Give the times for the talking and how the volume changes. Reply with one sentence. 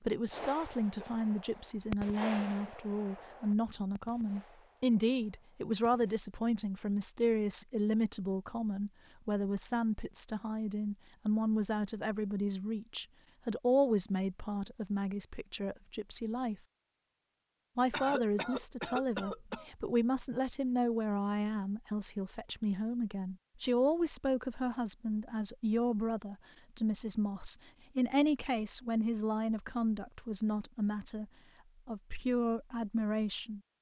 The talking can be heard from 0.0 to 16.6 s, at a steady volume; from 17.8 to 31.2 s, at a steady volume; and briefly from 31.9 to 33.6 s.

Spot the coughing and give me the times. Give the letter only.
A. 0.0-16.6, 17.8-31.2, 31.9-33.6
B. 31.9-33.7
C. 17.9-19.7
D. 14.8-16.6
C.